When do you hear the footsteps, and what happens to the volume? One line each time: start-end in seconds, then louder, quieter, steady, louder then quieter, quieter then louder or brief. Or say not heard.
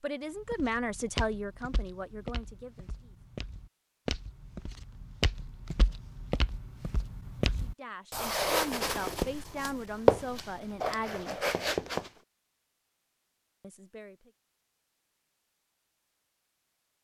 0.3-12.1 louder.